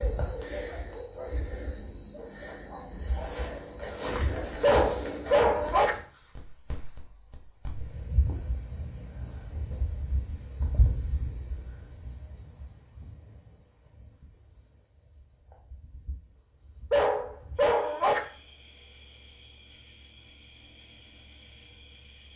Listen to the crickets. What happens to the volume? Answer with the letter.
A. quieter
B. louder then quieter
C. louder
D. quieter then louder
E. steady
A.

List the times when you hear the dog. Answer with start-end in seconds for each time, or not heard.
4.6-6.0, 16.9-18.2.